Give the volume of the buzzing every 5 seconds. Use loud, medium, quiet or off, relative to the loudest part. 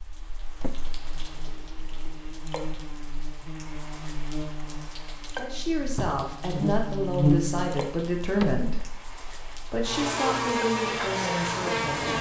quiet, loud, loud.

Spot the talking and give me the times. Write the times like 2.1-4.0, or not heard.
5.3-12.1.